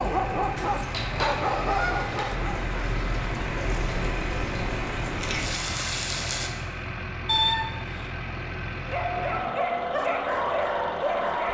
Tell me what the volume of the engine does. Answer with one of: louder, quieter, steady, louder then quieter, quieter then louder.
steady.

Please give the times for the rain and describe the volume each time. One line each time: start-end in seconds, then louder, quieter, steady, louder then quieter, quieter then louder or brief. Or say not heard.
0.0-6.5 louder.